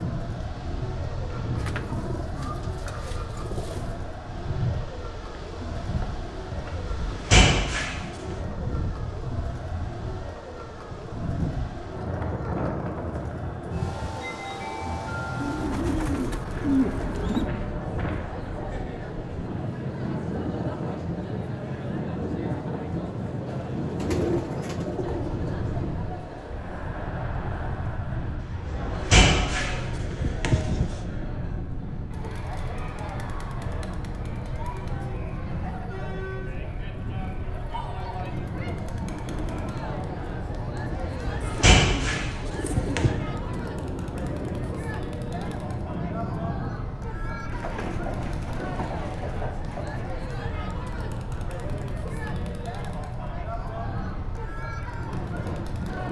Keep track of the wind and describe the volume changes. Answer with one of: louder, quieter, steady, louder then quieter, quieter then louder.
steady.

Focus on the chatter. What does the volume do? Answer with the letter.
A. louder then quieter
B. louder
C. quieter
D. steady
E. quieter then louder
D.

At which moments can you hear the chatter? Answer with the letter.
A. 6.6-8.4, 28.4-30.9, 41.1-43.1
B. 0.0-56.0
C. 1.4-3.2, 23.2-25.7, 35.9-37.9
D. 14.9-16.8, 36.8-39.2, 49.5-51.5
B.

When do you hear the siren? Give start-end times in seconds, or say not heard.
not heard.